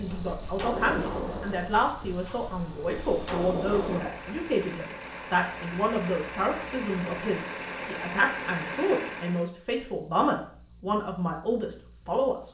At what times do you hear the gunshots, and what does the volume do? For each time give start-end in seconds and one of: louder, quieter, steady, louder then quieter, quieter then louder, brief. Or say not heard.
0.1-4.1 quieter then louder.